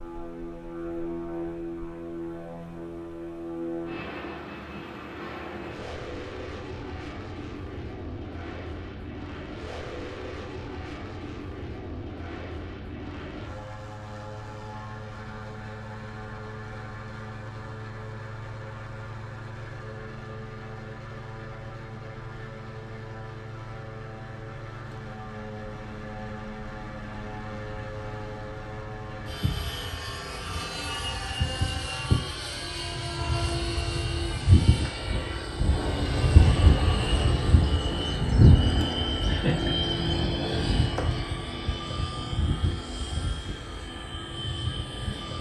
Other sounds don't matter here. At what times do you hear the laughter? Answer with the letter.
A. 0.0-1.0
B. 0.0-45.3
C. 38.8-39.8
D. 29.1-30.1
C.